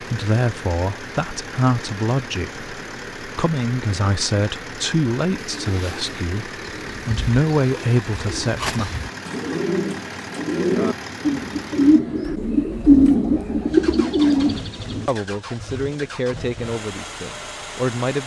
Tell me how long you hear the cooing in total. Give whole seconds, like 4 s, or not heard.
10 s.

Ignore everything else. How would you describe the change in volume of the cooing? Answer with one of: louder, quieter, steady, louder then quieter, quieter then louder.
louder.